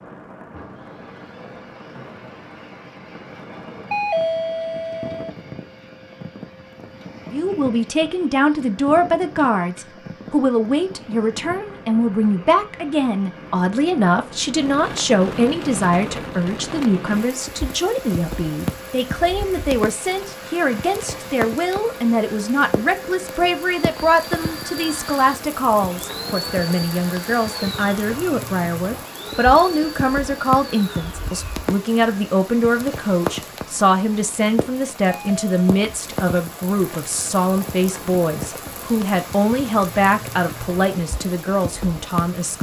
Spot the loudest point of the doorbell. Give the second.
4 s.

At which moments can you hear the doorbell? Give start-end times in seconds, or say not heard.
3.9-5.3, 35.0-35.7.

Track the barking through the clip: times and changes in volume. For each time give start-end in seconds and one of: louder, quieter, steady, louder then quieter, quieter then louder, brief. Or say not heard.
not heard.